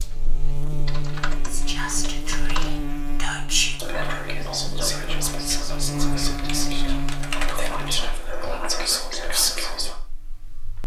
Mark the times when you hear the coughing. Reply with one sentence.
The coughing can't be heard in this clip.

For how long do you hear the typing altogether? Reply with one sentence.
The typing can be heard for 4 seconds in total.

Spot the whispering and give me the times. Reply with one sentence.
You can hear the whispering from 1.4 to 9.9 s.